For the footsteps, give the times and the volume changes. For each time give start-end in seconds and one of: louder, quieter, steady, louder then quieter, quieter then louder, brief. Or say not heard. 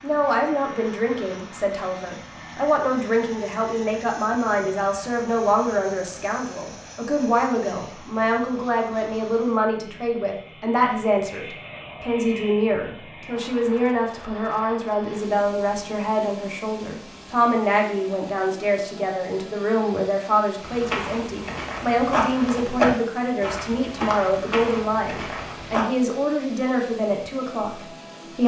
20.6-25.9 louder then quieter.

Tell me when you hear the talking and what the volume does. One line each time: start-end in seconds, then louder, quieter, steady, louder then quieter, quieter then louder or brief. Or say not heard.
0.0-28.4 steady.